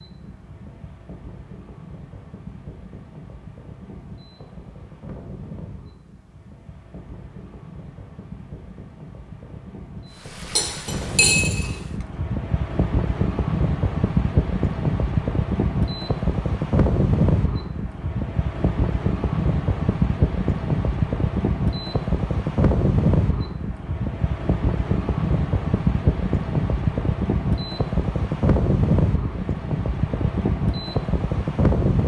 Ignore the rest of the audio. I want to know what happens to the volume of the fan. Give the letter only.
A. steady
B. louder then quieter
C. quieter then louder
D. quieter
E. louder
E.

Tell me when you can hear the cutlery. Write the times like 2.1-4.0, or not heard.
10.6-11.7.